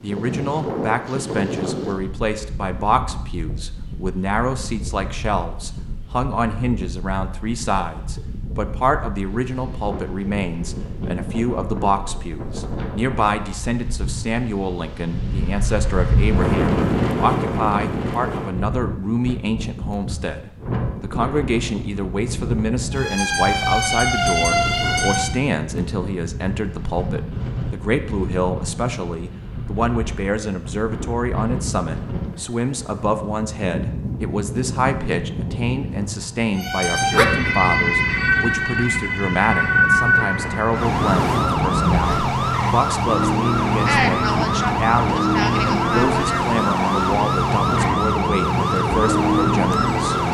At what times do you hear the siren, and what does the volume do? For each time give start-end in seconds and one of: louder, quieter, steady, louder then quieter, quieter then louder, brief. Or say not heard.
22.9-25.4 brief
36.5-50.3 steady.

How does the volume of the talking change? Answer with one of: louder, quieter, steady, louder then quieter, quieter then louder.
steady.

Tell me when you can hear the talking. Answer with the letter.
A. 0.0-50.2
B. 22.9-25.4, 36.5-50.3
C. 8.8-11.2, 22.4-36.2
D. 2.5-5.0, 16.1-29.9
A.